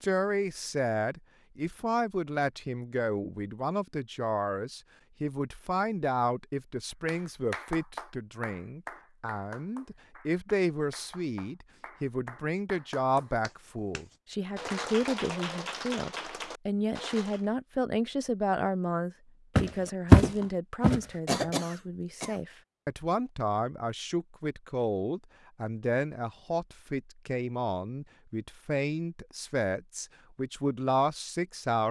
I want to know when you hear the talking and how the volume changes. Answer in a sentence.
You can hear the talking from 0.0 to 31.8 s, at a steady volume.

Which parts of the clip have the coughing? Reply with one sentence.
The coughing can be heard from 21.2 to 22.4 s.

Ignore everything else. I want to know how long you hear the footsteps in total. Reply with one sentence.
The footsteps can be heard for 2 seconds in total.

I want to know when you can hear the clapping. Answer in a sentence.
The clapping can be heard from 7.0 to 17.4 s.